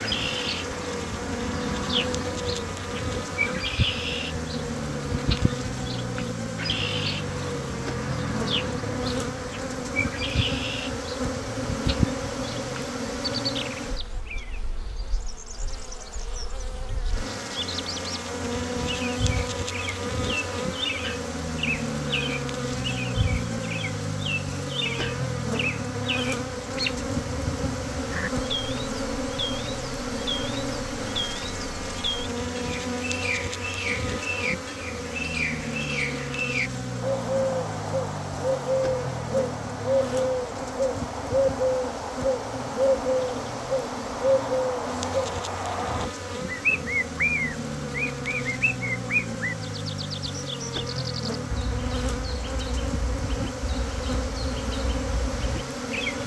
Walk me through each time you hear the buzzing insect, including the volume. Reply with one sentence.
You can hear the buzzing insect from 0.0 to 56.2 s, at a steady volume.